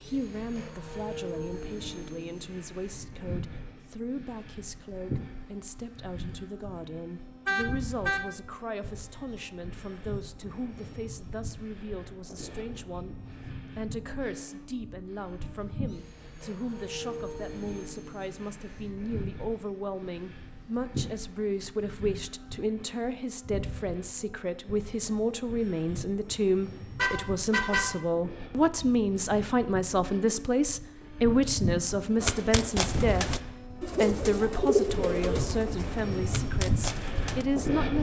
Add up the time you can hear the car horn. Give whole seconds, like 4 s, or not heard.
2 s.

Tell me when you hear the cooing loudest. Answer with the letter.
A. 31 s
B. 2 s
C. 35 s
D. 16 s
C.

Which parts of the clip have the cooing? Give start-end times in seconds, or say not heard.
32.2-37.5.